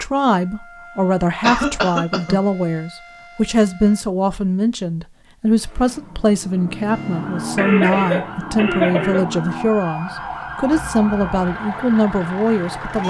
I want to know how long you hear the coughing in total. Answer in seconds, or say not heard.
3 s.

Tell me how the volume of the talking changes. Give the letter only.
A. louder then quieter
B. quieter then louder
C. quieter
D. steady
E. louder
D.